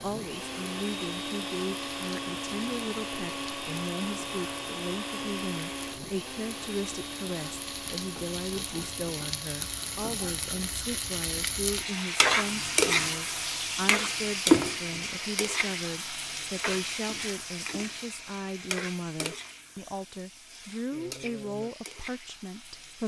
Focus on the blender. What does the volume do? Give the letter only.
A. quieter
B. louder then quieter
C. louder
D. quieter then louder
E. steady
A.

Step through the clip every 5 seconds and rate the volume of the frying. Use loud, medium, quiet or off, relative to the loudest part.
quiet, quiet, loud, medium, quiet.